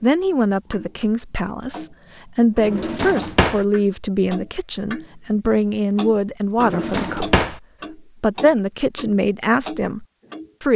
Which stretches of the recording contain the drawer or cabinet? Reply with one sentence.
The drawer or cabinet can be heard from 2.6 to 3.6 s and from 6.5 to 7.5 s.